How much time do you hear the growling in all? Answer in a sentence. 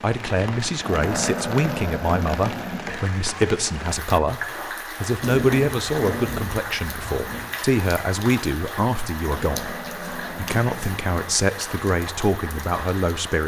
You can hear the growling for 6 seconds altogether.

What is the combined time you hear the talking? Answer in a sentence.
The talking can be heard for 13 seconds in total.